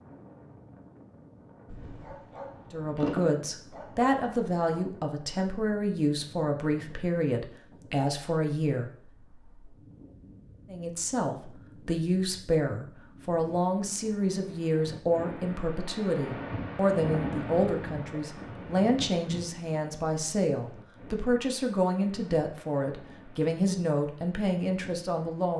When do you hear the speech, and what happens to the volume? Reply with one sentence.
The speech can be heard from 2.7 to 8.9 s, at a steady volume; and from 10.7 to 25.5 s, at a steady volume.